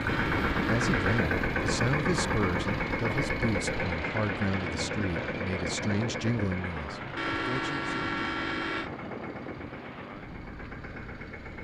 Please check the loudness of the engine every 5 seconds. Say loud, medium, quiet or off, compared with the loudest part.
loud, medium, quiet.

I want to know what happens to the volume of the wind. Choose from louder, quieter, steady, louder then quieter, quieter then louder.
quieter.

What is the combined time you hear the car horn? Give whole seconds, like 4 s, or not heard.
3 s.